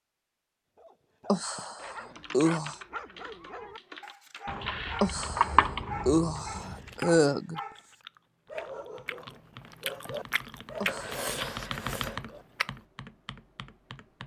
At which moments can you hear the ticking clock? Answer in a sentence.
The ticking clock can't be heard in this clip.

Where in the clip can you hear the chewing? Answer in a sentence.
The chewing can be heard from 6.6 to 12.7 s.